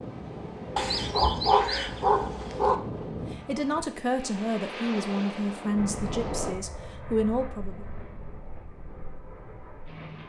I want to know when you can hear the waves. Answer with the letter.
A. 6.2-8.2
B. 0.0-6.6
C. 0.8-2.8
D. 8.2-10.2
B.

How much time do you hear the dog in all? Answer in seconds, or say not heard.
2 s.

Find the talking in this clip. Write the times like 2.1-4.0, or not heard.
3.3-7.8.